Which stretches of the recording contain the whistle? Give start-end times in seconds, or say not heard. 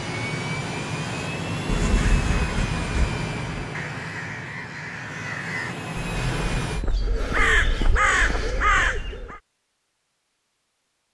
not heard.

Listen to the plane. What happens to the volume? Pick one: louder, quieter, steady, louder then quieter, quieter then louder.
quieter then louder.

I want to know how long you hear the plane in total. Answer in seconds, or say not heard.
7 s.